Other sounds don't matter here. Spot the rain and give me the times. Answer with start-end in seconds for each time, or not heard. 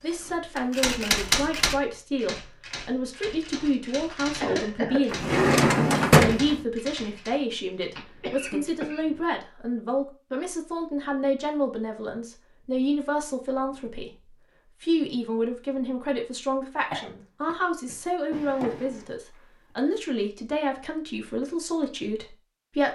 not heard.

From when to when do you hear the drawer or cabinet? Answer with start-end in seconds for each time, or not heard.
5.1-6.6, 18.3-19.5.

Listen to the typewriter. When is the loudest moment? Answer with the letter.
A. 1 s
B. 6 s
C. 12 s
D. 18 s
A.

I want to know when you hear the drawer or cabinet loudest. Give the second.
6 s.